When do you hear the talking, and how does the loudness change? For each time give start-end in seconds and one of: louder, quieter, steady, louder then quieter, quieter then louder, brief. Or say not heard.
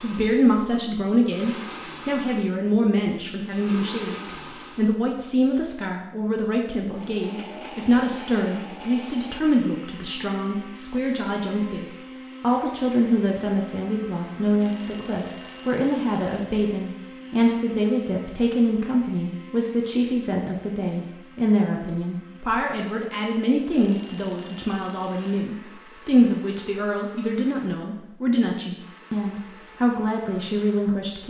0.0-31.2 steady.